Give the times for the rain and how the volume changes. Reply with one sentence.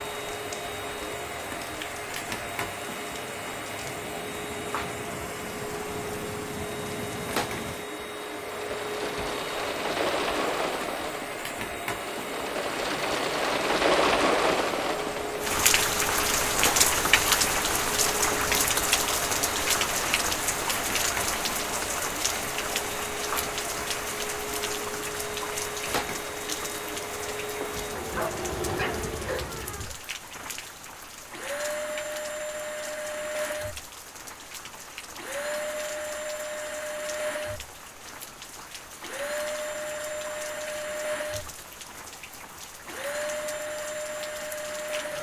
The rain can be heard from 0.0 to 45.1 s, getting louder then quieter.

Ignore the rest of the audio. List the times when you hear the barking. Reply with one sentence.
You can hear the barking from 28.1 to 29.9 s.